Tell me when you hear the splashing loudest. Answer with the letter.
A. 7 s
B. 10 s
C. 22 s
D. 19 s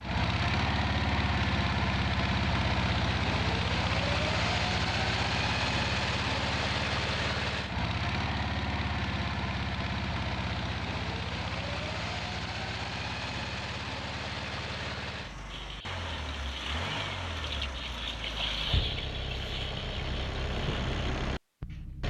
D.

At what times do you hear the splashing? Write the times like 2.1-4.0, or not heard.
15.4-20.9.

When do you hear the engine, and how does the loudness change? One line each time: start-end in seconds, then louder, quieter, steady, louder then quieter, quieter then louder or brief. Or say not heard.
0.0-22.0 quieter.